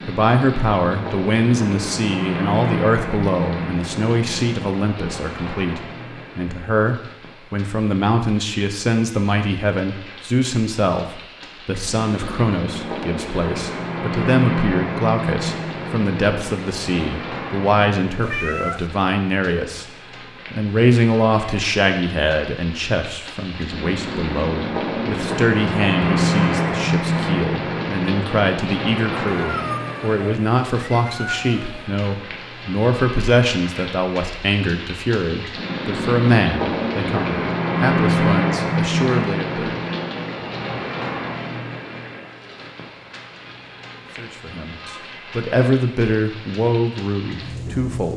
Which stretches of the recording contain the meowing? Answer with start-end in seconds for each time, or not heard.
18.2-18.9, 29.2-31.9.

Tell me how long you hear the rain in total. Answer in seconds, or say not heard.
48 s.